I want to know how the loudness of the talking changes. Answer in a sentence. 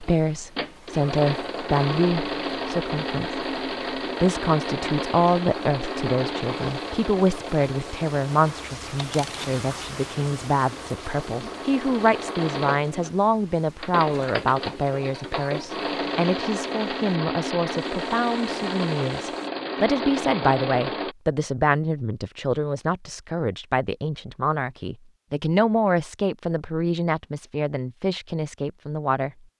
The volume of the talking stays about the same.